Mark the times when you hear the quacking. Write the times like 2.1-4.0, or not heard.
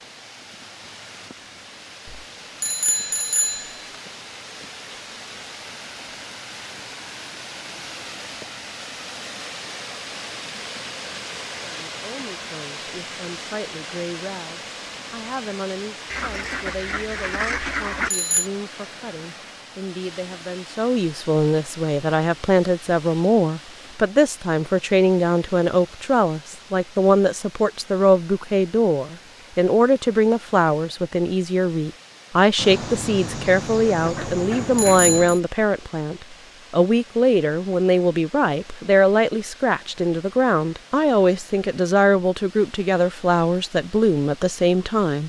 16.1-18.1, 32.5-35.4.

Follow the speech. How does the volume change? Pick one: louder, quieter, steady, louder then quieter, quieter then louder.
louder.